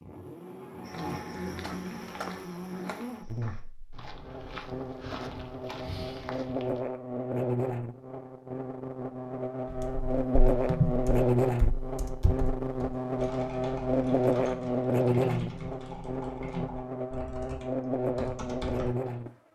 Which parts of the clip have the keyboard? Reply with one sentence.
You can hear the keyboard from 9.7 to 19.1 s.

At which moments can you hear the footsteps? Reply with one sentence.
The footsteps can be heard from 0.8 to 6.8 s.